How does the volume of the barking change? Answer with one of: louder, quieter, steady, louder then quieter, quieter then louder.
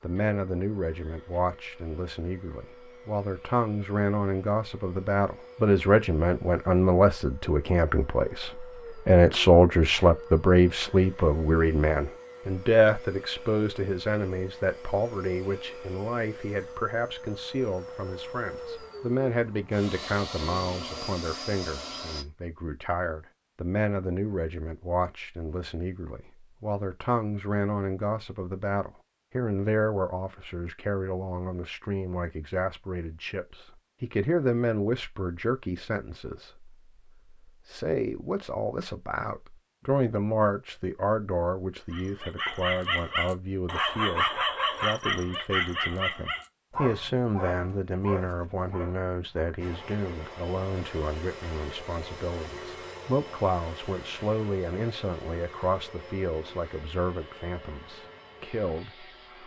quieter.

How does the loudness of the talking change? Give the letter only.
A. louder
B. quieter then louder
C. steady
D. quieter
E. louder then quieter
D.